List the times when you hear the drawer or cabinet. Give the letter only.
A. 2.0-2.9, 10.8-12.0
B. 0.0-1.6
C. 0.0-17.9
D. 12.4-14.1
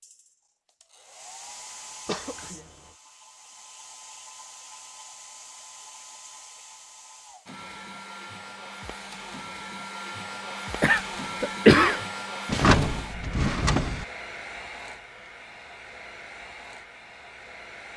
D.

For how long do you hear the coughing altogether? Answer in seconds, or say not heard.
2 s.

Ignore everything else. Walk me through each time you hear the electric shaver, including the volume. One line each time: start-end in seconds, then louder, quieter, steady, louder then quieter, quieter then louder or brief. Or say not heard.
not heard.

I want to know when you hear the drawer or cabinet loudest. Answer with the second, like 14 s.
13 s.